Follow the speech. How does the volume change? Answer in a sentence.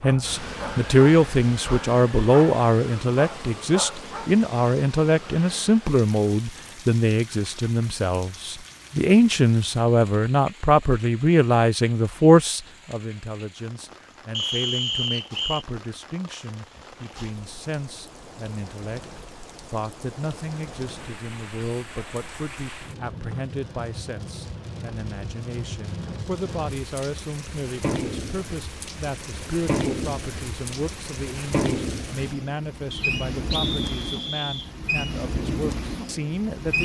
The loudness of the speech goes down.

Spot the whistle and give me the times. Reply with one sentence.
The whistle can be heard from 14.3 to 15.7 s and from 32.9 to 34.7 s.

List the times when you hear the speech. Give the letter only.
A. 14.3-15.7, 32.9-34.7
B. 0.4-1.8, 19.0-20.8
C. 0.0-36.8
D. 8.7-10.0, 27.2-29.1
C.